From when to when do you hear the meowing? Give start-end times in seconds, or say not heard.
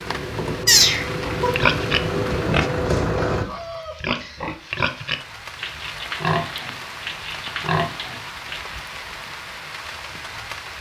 0.7-1.5.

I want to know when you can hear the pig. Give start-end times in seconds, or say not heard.
1.2-8.8.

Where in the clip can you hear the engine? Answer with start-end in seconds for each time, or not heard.
0.0-3.5.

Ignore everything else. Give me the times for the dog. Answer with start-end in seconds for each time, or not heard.
not heard.